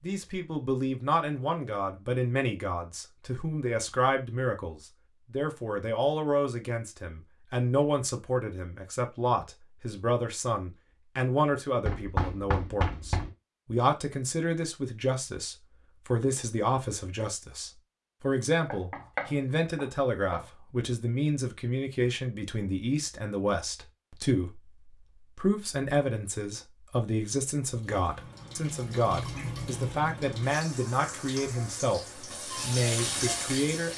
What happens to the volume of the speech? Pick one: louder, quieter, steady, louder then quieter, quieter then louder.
steady.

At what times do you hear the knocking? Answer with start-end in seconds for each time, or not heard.
11.8-13.3, 18.7-20.4.